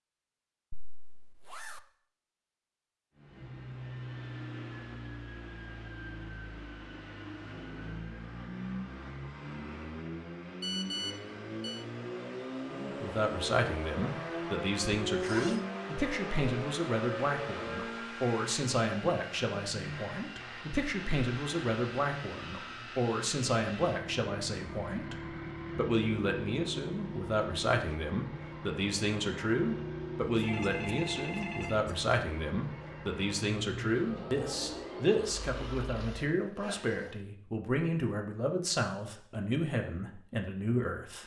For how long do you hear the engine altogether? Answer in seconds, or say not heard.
33 s.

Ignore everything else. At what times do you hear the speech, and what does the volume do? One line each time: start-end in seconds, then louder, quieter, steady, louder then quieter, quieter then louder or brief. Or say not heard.
12.7-41.2 steady.